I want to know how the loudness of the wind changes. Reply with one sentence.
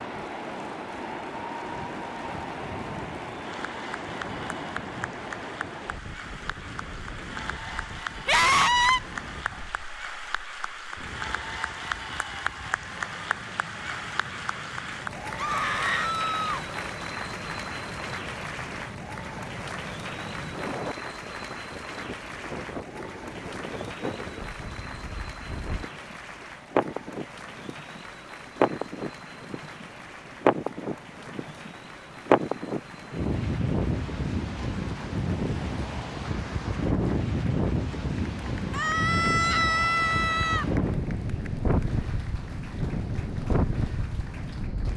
The volume of the wind goes down, then up.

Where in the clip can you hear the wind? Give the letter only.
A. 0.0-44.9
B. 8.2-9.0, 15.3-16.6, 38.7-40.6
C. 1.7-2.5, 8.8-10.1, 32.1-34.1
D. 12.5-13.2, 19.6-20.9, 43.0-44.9
A.